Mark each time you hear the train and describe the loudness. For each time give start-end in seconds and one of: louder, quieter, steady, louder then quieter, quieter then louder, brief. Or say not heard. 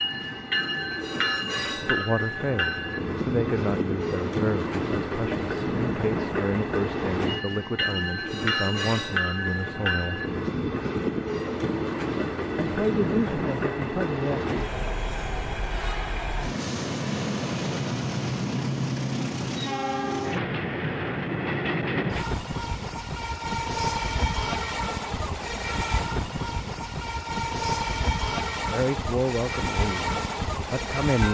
0.0-31.2 steady.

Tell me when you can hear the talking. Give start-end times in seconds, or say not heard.
1.8-10.2, 12.6-14.6, 28.7-31.2.